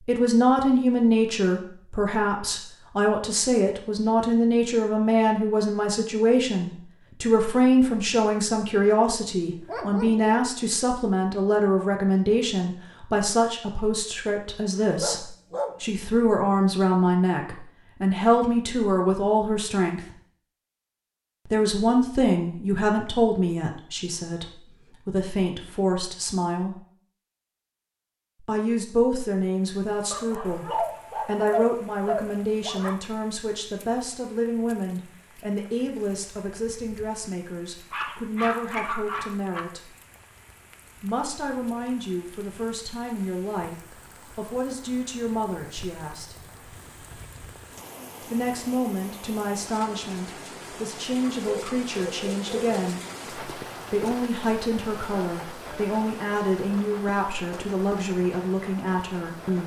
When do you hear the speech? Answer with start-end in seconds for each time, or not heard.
0.1-20.1, 21.4-26.8, 28.4-39.9, 41.0-46.4, 48.2-53.0, 53.9-59.6.